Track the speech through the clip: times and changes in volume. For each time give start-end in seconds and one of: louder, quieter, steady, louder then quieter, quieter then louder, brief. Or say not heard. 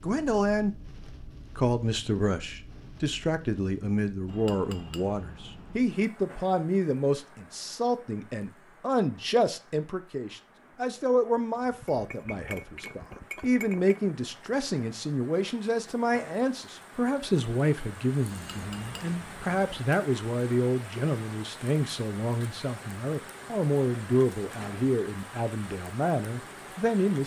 0.0-0.8 brief
1.6-27.2 steady.